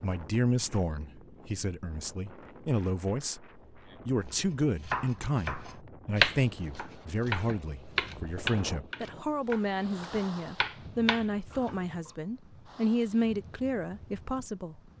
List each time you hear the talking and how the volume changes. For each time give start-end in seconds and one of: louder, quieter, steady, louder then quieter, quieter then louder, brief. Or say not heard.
0.0-14.8 steady.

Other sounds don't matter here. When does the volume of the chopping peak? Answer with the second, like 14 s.
6 s.